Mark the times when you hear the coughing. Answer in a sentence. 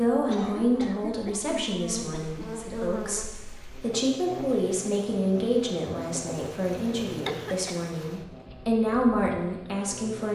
You can hear the coughing from 0.2 to 2.5 s and from 7.1 to 7.8 s.